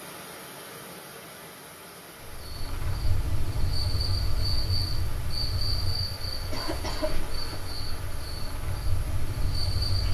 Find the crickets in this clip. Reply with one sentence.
The crickets can be heard from 2.2 to 10.1 s.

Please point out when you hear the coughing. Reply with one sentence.
The coughing can be heard from 6.5 to 7.2 s.